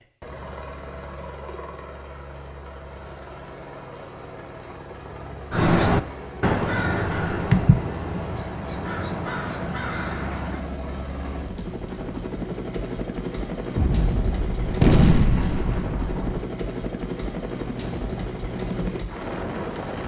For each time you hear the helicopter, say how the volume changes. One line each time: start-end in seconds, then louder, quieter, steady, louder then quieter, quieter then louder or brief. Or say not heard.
0.0-20.0 louder.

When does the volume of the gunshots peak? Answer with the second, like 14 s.
15 s.